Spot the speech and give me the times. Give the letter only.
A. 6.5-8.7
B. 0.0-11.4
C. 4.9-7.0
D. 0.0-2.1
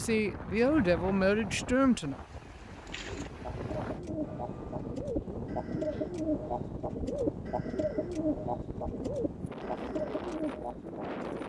D.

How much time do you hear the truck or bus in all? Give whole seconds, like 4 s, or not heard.
not heard.